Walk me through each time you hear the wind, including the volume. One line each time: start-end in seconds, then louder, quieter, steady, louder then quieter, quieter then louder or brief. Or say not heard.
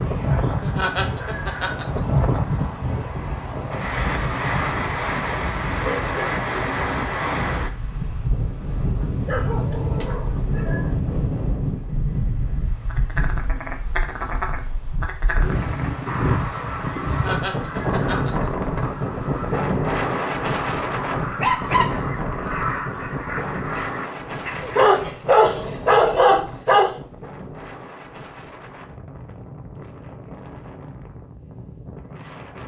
0.0-32.6 quieter.